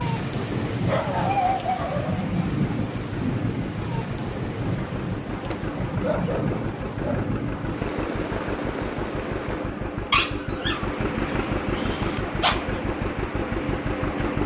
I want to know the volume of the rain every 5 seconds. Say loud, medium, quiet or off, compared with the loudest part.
loud, loud, medium.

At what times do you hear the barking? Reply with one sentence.
You can hear the barking from 0.3 to 2.3 s, from 5.5 to 7.3 s, from 10.1 to 10.8 s and from 11.8 to 12.6 s.